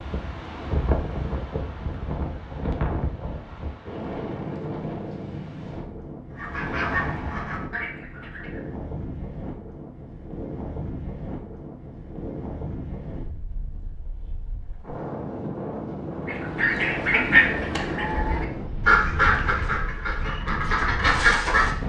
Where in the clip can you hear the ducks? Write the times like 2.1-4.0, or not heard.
6.3-8.8, 16.2-21.7.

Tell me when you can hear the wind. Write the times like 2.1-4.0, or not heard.
0.0-21.8.